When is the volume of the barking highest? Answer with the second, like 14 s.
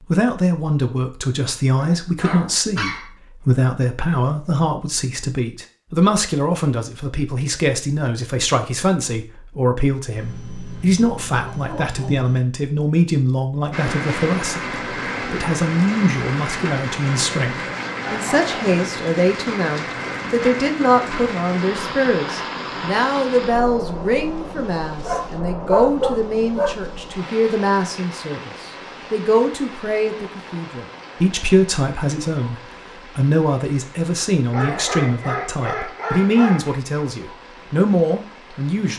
26 s.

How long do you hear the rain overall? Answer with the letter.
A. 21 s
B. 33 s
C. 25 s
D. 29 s
C.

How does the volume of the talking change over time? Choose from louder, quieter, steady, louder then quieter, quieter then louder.
steady.